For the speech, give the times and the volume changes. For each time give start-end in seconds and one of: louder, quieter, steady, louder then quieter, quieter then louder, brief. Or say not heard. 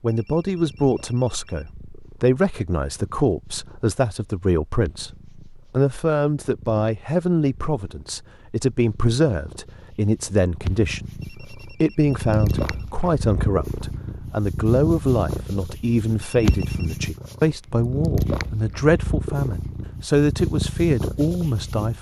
0.0-21.9 steady.